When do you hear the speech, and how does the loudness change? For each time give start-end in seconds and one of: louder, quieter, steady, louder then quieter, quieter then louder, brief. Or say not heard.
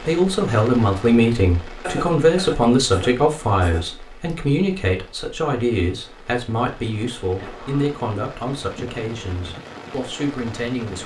0.0-11.0 quieter.